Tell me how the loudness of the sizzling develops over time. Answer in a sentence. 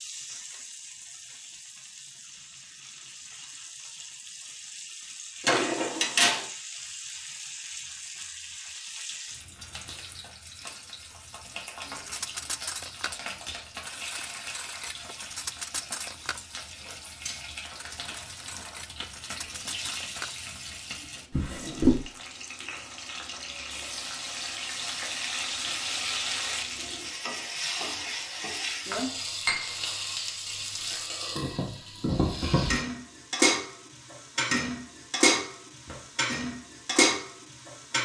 The volume of the sizzling goes up.